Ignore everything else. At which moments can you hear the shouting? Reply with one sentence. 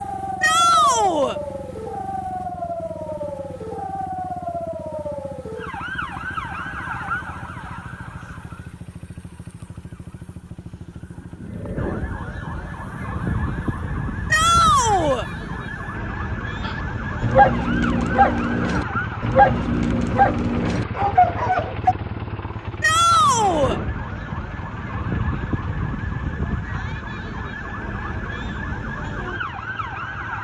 The shouting can be heard from 0.4 to 1.4 s, from 14.3 to 15.2 s and from 22.8 to 23.8 s.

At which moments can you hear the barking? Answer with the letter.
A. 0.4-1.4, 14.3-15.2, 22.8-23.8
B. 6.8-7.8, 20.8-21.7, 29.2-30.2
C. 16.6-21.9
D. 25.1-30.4
C.